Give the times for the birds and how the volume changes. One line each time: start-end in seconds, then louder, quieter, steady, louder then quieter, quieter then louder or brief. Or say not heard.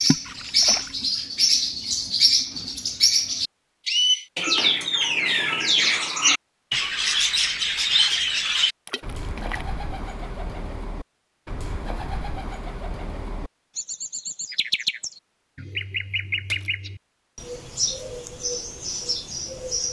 0.0-19.8 quieter.